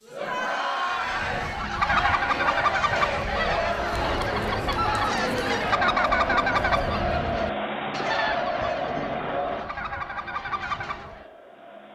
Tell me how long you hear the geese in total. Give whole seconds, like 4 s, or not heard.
10 s.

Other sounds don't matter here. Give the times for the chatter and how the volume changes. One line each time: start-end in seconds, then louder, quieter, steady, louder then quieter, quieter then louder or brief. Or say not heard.
0.0-11.8 quieter.